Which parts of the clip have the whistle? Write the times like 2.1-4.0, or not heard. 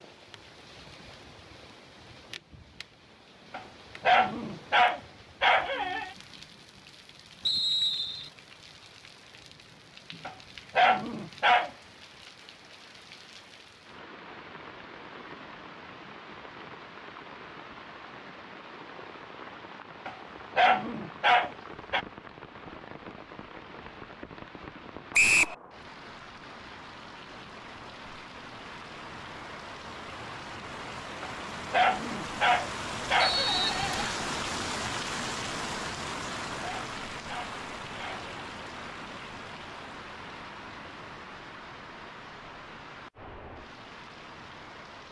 7.5-8.3, 25.1-25.6, 33.2-34.1.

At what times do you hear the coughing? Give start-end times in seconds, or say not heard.
not heard.